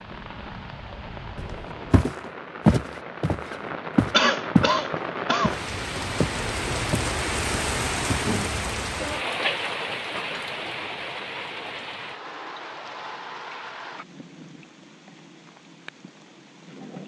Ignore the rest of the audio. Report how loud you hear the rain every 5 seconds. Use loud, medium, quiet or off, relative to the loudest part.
medium, loud, medium, quiet.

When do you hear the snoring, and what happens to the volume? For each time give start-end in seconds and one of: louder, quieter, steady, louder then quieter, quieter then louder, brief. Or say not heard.
not heard.